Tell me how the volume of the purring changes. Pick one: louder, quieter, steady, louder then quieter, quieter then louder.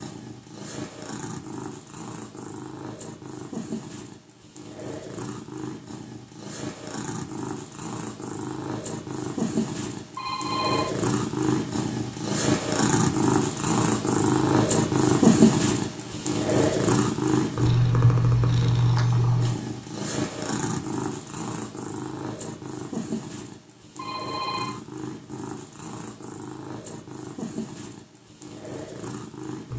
louder then quieter.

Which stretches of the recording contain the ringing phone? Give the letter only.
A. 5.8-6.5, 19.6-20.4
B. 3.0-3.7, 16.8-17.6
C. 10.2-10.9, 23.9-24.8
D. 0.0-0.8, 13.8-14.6
C.